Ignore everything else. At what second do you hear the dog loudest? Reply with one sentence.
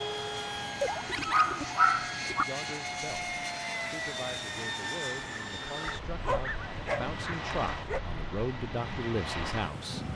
The loudest moment of the dog is at 2 seconds.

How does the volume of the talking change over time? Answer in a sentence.
The loudness of the talking goes up.